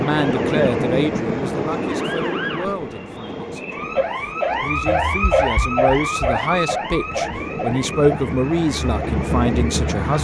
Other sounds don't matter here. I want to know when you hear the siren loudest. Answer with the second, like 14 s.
5 s.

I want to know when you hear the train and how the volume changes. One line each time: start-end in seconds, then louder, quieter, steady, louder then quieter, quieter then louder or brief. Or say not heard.
0.0-10.1 quieter then louder.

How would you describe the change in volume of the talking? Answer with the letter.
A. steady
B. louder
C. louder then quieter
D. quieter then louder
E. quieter
D.